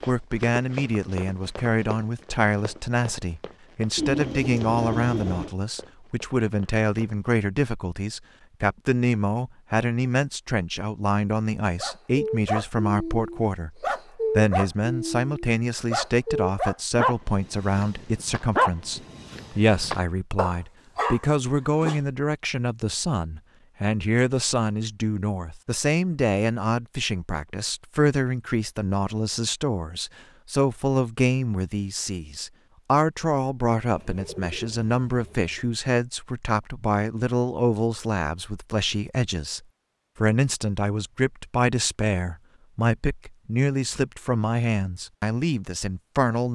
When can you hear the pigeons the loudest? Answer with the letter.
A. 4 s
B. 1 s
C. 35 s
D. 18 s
A.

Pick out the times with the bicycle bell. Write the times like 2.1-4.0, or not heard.
not heard.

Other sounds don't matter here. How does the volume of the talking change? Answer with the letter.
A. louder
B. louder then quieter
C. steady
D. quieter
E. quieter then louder
C.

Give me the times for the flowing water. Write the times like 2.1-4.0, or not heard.
not heard.